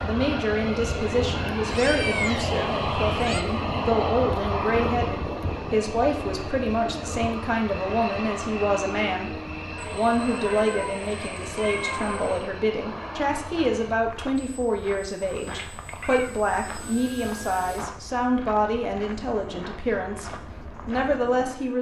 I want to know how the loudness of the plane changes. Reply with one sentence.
The loudness of the plane goes down.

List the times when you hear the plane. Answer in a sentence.
You can hear the plane from 0.0 to 21.7 s.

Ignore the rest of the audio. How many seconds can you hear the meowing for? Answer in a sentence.
The meowing can be heard for 5 seconds in total.